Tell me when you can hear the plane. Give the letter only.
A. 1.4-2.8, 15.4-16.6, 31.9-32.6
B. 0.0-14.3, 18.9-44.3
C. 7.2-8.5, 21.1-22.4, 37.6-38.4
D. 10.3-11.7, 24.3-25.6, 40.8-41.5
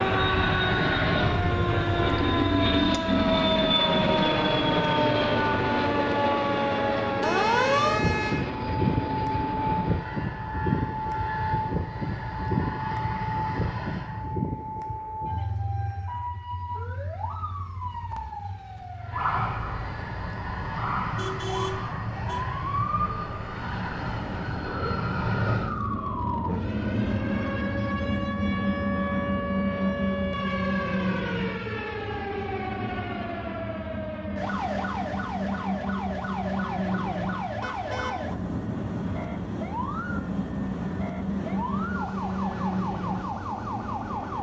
B.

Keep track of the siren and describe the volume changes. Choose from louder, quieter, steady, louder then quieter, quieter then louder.
quieter.